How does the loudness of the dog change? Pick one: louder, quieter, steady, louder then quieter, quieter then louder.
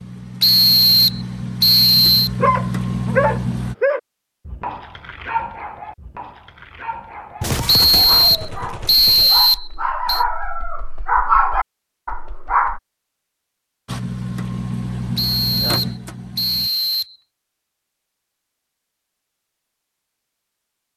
quieter then louder.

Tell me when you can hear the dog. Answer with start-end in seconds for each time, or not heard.
2.4-12.8.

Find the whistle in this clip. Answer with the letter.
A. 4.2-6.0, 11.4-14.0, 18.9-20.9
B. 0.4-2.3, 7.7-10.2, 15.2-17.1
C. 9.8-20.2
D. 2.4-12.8
B.